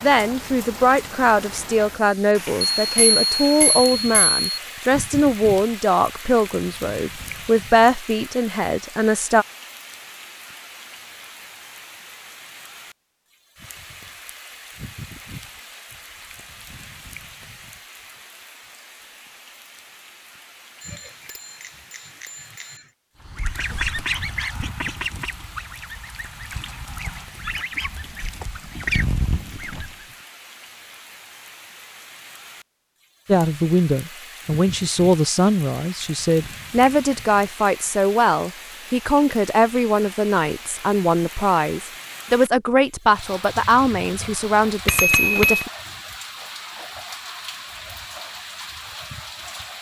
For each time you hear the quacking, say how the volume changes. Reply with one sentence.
You can hear the quacking from 23.2 to 30.1 s, getting quieter then louder.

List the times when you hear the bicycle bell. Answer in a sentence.
The bicycle bell can be heard from 2.8 to 4.4 s, from 20.8 to 22.9 s and from 44.9 to 45.6 s.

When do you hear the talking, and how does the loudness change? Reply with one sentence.
You can hear the talking from 0.0 to 9.4 s, at a steady volume; and from 33.2 to 45.7 s, at a steady volume.